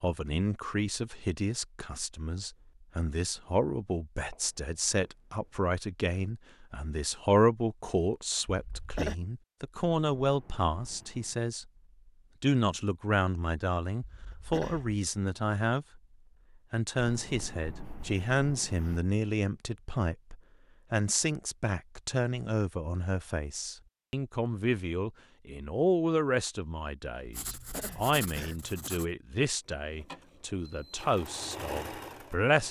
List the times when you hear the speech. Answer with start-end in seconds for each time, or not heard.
0.0-11.7, 12.4-16.0, 16.7-32.6.